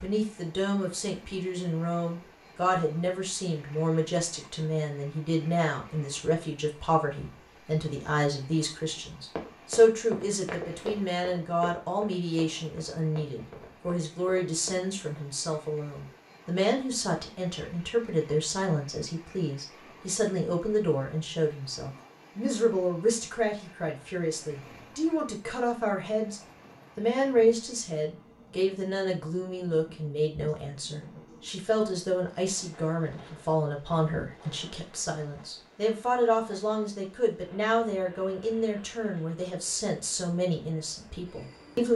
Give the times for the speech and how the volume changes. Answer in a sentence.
The speech can be heard from 0.0 to 41.9 s, at a steady volume.